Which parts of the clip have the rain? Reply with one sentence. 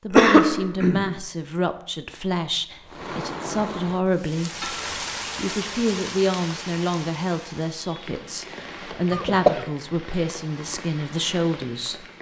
The rain can be heard from 2.9 to 12.1 s.